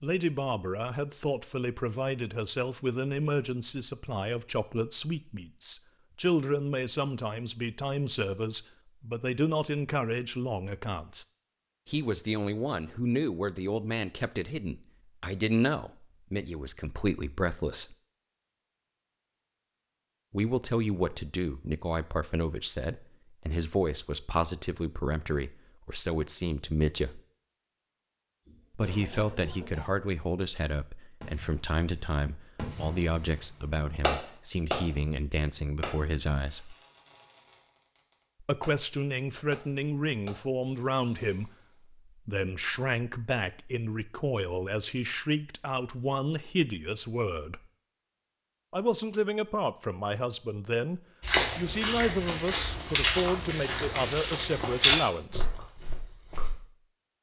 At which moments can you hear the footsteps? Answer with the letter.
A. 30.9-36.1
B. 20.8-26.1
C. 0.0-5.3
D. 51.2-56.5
D.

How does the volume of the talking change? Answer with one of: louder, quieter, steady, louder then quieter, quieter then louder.
steady.